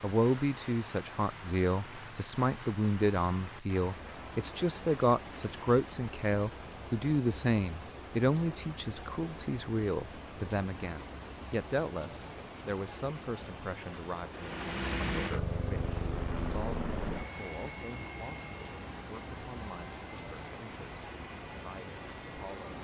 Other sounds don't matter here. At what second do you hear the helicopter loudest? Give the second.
15 s.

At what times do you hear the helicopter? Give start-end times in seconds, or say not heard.
14.3-22.7.